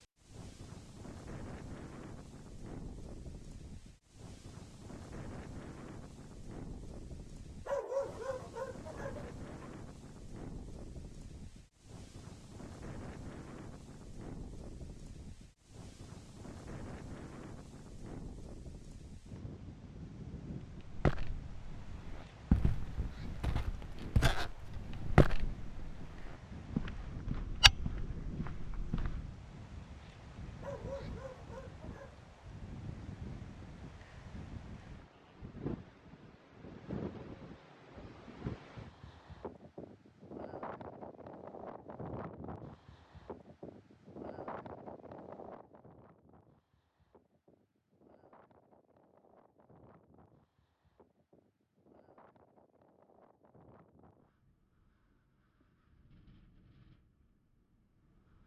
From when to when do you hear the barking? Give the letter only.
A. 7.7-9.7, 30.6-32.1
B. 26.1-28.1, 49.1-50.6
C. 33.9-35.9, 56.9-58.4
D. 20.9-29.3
A.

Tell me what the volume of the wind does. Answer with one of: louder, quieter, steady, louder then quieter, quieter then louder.
quieter.